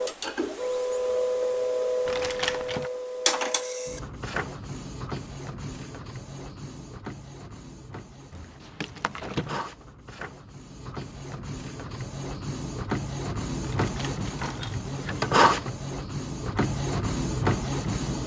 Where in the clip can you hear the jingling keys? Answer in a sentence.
The jingling keys can be heard from 2.0 to 2.9 s, from 8.3 to 9.6 s and from 13.6 to 14.8 s.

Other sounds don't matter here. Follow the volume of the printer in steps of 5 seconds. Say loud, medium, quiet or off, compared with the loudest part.
loud, quiet, medium, loud.